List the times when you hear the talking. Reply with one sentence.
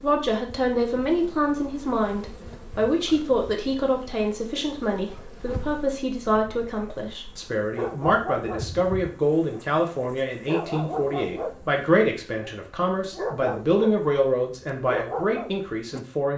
The talking can be heard from 0.0 to 16.3 s.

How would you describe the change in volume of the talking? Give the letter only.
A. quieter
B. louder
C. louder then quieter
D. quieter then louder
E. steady
E.